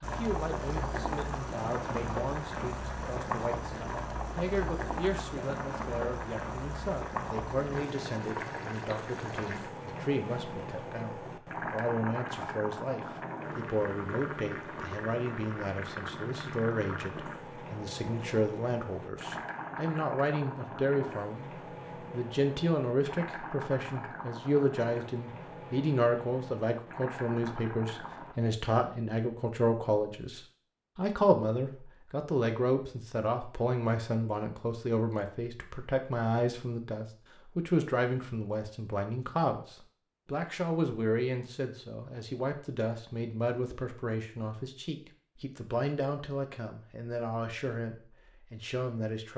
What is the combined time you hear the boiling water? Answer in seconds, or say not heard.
28 s.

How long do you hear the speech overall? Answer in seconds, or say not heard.
49 s.